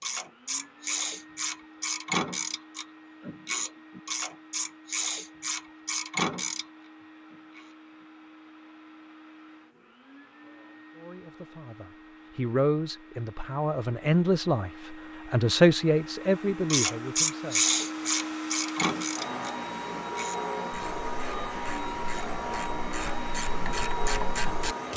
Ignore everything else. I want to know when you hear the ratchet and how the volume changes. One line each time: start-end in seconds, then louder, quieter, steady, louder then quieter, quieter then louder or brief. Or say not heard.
0.0-8.1 steady
16.5-24.9 quieter then louder.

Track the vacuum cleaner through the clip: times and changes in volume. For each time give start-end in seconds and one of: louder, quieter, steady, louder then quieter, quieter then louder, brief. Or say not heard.
0.0-24.9 louder.